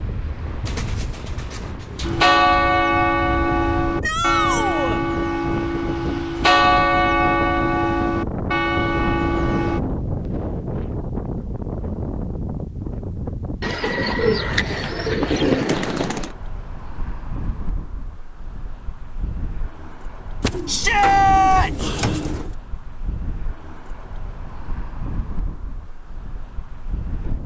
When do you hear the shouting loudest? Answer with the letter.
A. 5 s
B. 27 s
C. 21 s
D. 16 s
C.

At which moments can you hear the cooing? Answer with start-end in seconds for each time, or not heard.
0.7-2.2, 13.6-16.4, 20.4-22.6.